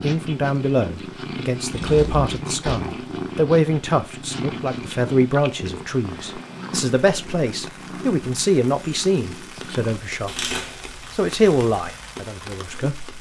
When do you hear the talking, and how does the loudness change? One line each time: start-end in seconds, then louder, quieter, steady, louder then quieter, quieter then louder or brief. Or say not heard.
0.0-10.5 steady
11.2-13.1 brief.